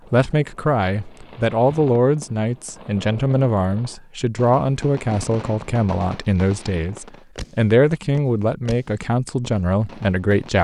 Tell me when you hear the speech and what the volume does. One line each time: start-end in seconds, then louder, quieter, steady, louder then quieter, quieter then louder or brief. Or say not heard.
0.1-10.6 steady.